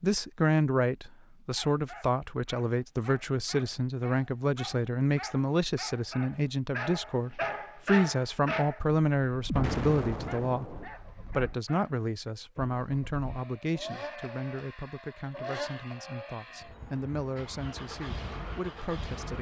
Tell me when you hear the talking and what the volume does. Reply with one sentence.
The talking can be heard from 0.0 to 19.3 s, getting quieter.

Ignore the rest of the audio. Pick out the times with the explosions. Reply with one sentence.
The explosions can be heard from 9.5 to 10.8 s.